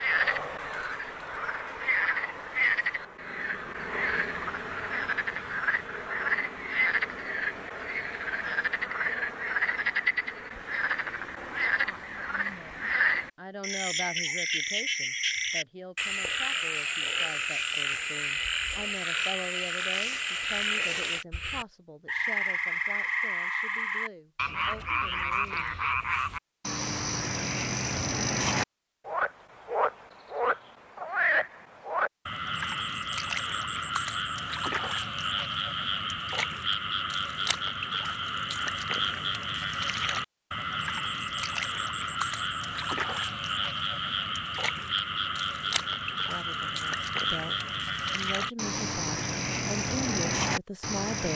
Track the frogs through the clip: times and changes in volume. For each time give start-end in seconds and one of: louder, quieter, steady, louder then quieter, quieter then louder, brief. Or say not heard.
0.0-51.3 steady.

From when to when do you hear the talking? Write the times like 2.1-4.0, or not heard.
11.8-25.9, 46.1-51.3.